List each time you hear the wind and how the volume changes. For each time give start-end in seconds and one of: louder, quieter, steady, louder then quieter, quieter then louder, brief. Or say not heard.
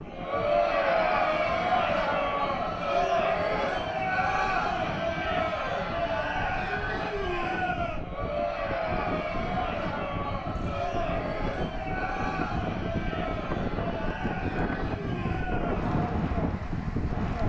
0.0-17.4 louder.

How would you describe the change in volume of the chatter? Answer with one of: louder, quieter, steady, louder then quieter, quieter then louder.
quieter.